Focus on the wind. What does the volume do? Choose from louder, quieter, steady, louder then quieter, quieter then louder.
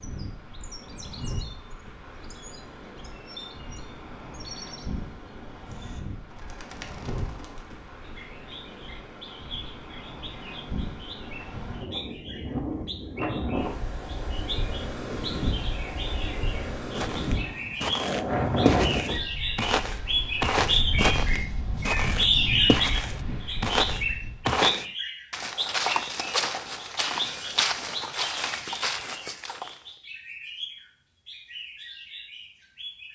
louder then quieter.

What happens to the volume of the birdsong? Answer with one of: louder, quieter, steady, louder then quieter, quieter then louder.
louder then quieter.